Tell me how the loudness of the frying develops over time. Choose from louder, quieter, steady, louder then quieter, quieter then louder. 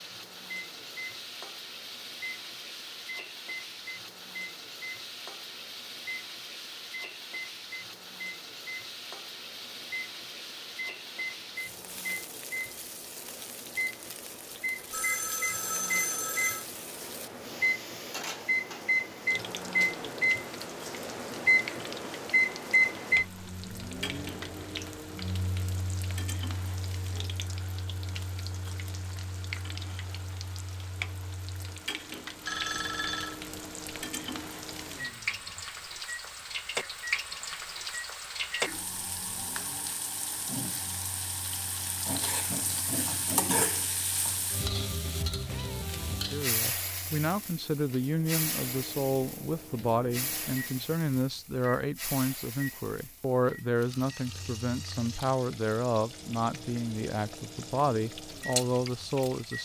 louder then quieter.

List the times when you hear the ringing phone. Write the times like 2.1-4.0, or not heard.
14.9-16.6, 32.4-33.4.